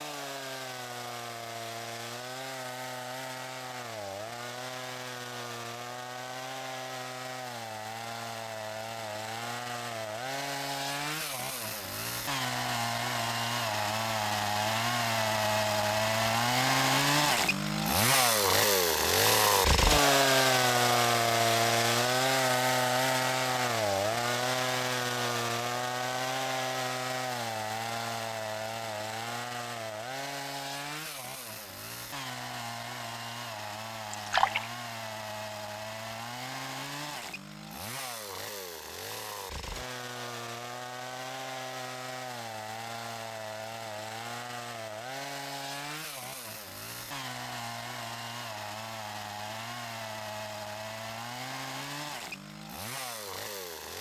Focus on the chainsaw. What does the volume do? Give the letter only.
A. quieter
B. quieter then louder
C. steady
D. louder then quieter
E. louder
D.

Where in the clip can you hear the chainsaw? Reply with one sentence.
The chainsaw can be heard from 0.0 to 53.9 s.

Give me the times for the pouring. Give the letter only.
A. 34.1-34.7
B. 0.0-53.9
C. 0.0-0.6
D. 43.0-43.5
A.